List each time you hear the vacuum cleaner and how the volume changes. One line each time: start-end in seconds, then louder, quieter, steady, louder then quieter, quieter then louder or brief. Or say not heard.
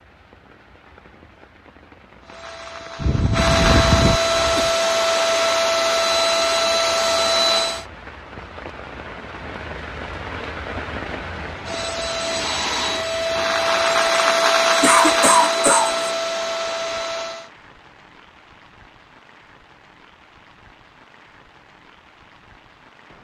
2.2-7.8 louder
11.5-17.5 louder then quieter.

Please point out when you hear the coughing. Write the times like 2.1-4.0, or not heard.
3.0-4.7, 14.8-16.0.